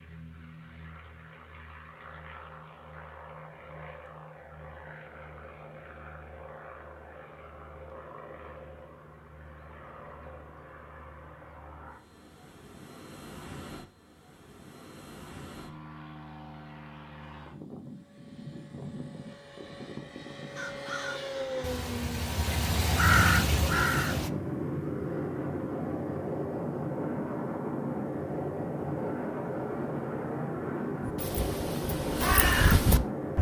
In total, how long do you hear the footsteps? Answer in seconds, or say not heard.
not heard.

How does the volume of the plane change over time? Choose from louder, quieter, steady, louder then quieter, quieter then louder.
louder.